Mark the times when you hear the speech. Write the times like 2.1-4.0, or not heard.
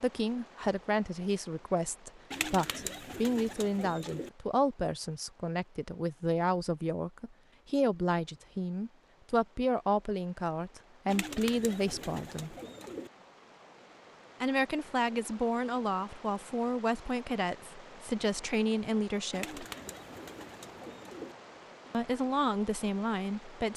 0.0-12.6, 14.4-19.6, 21.9-23.7.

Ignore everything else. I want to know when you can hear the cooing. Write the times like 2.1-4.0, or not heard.
2.3-4.3, 11.1-13.1, 19.3-21.4.